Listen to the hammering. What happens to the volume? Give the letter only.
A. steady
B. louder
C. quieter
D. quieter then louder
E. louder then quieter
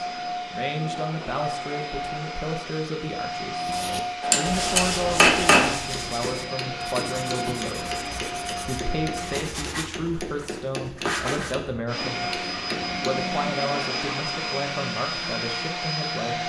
C.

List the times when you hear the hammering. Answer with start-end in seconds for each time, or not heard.
4.2-13.2.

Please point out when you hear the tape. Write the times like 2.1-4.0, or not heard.
not heard.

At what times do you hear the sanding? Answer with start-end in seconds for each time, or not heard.
3.6-11.6.